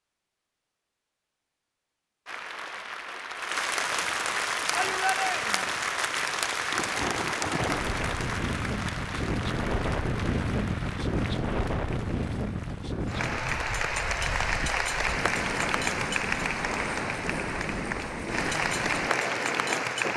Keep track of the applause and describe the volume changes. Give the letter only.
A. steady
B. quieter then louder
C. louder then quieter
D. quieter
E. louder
B.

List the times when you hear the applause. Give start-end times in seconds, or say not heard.
2.2-20.1.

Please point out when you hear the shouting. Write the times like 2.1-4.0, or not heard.
4.7-5.7.